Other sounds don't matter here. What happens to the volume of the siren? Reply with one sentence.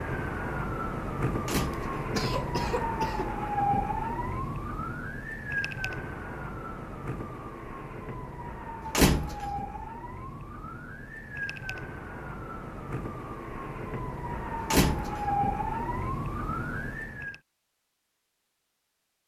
The volume of the siren goes down, then up.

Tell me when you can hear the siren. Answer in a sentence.
The siren can be heard from 0.0 to 17.4 s.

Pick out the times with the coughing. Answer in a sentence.
You can hear the coughing from 1.7 to 3.4 s.